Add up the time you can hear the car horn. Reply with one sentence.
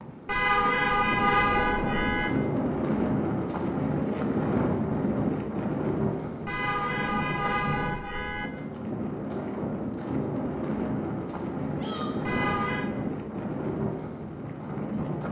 The car horn can be heard for 5 seconds in total.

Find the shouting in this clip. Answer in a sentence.
The shouting can be heard from 11.8 to 12.2 s.